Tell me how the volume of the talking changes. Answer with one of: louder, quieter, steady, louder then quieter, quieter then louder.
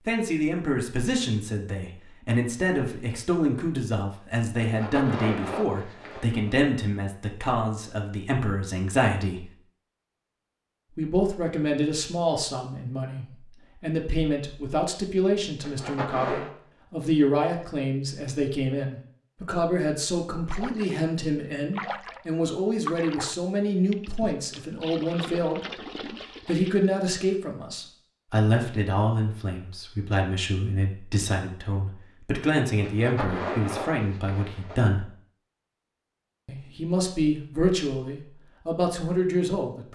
steady.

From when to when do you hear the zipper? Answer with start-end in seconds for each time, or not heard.
4.6-6.5, 15.6-16.5, 32.8-34.8.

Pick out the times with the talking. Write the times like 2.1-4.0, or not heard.
0.1-9.6, 10.9-25.9, 26.4-35.0, 36.5-39.9.